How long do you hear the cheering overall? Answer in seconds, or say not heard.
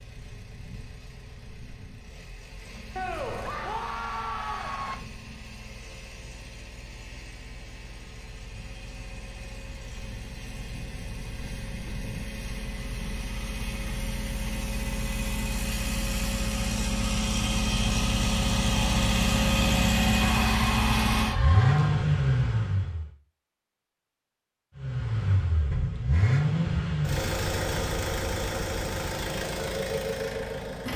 4 s.